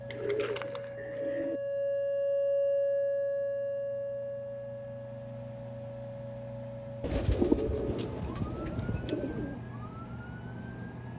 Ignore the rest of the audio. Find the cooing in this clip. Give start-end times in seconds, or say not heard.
0.1-1.6, 7.0-9.6.